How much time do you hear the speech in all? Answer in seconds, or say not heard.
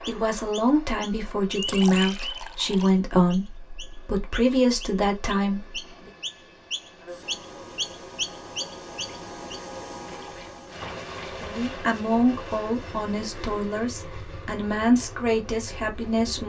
11 s.